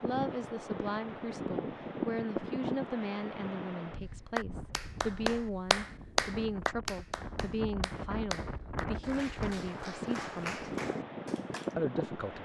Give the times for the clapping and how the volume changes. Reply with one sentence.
You can hear the clapping from 4.3 to 11.7 s, getting quieter.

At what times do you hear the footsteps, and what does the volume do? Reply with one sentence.
You can't hear the footsteps here.